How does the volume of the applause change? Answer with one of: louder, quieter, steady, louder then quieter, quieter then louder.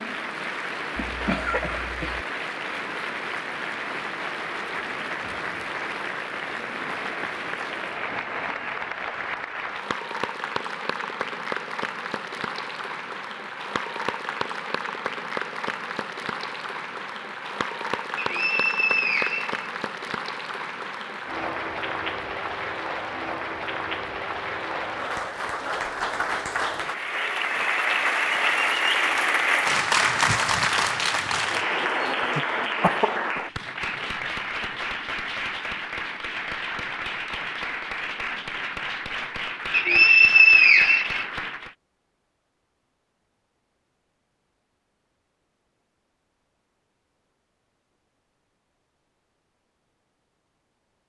louder then quieter.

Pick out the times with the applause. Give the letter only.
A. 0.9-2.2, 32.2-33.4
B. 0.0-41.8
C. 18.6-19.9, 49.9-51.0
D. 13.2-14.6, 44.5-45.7
B.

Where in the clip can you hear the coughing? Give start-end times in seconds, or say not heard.
0.9-2.2, 32.2-33.4.